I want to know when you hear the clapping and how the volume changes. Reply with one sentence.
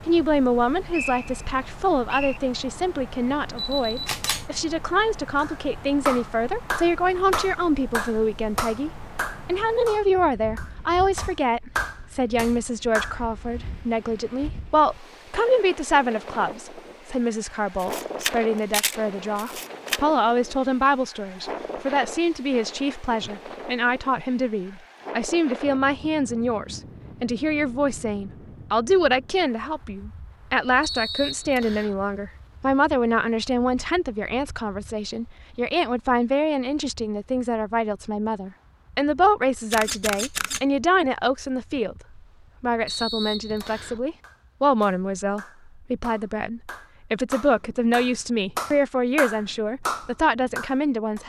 The clapping can be heard from 5.3 to 13.2 s, getting quieter then louder; and from 43.6 to 51.2 s, getting louder.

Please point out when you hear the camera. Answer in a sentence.
You can hear the camera from 3.5 to 4.5 s, from 17.8 to 20.0 s and from 39.7 to 40.6 s.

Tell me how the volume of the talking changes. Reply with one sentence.
The loudness of the talking stays about the same.